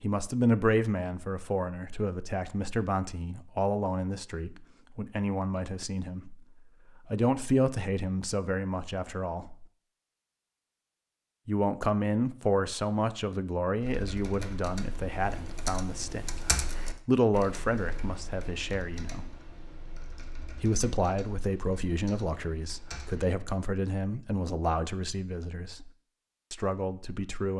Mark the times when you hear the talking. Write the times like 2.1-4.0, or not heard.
0.0-6.5, 7.0-9.7, 11.4-16.4, 17.1-19.4, 20.6-25.9, 26.5-27.5.